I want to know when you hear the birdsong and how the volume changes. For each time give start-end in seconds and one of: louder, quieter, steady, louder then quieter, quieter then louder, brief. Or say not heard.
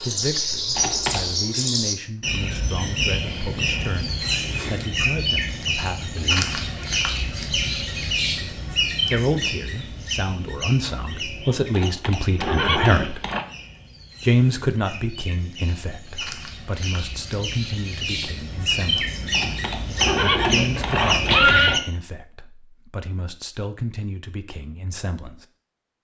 0.0-21.8 quieter then louder.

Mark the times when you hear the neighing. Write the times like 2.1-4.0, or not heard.
0.8-1.4, 11.7-13.4, 19.3-21.8.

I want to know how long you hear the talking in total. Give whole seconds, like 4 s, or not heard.
21 s.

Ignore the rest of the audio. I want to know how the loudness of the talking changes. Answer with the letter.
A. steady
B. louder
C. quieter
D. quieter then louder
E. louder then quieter
E.